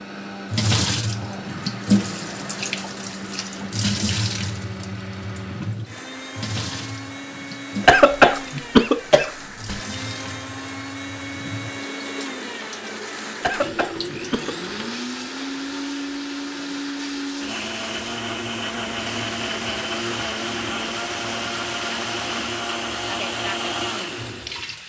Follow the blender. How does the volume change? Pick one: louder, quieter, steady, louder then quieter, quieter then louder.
louder.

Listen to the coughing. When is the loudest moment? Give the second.
8 s.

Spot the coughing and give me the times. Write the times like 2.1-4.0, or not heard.
7.8-9.8, 13.4-14.6.